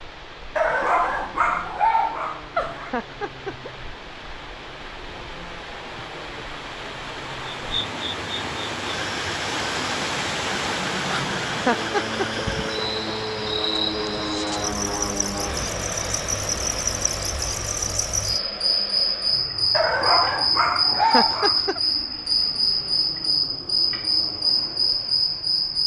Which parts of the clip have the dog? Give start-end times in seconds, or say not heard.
0.6-2.9, 19.7-21.8.